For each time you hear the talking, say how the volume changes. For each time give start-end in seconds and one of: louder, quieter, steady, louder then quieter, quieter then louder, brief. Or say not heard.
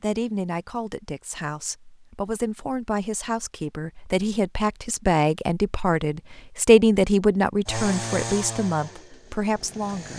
0.0-10.1 louder then quieter.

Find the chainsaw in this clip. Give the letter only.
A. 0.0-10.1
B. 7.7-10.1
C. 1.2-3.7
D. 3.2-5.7
B.